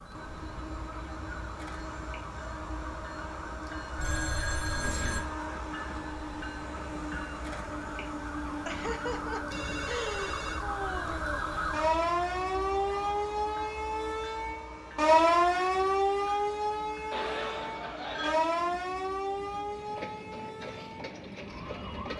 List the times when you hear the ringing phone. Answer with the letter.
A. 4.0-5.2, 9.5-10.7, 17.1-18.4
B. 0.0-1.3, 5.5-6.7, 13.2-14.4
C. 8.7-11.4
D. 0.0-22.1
A.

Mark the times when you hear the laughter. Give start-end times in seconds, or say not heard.
8.7-11.4.